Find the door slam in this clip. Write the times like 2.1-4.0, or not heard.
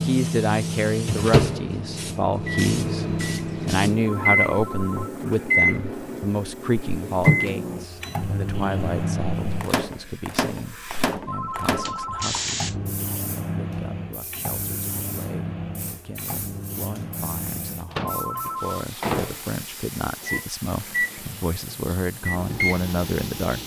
not heard.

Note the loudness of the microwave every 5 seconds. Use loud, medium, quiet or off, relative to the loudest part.
loud, loud, medium, medium, medium.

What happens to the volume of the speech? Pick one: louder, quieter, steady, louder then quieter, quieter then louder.
quieter then louder.